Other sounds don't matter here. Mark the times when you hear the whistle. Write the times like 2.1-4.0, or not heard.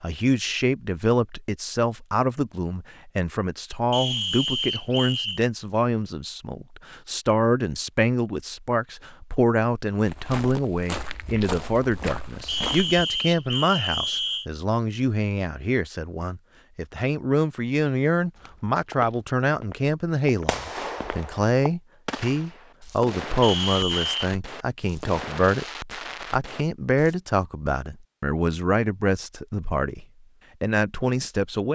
3.9-5.4, 12.4-14.4, 23.4-24.2.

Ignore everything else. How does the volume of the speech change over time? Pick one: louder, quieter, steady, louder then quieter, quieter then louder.
steady.